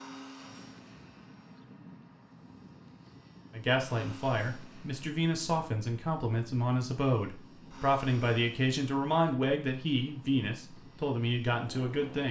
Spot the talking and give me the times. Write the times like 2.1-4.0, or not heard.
3.5-12.2.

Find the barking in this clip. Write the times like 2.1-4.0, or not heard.
not heard.